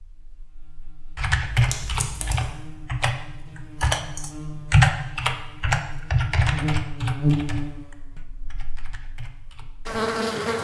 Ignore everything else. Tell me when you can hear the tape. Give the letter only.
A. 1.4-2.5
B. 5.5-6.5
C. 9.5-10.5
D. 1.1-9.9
A.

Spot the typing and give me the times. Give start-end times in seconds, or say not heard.
1.1-9.9.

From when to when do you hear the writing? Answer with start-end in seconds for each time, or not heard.
not heard.